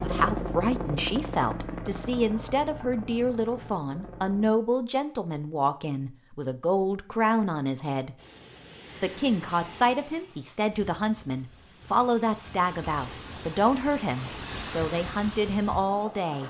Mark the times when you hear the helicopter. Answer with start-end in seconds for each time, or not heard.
0.0-4.5.